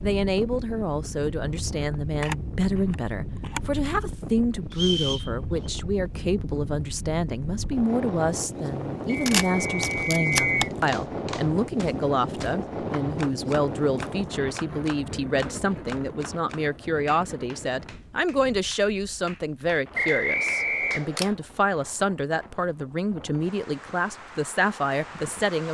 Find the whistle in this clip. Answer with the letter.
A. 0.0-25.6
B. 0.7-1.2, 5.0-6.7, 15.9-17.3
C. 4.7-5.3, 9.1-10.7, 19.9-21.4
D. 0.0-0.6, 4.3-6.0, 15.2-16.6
C.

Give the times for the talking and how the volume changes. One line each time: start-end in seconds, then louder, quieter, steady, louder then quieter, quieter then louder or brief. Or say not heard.
0.0-25.6 steady.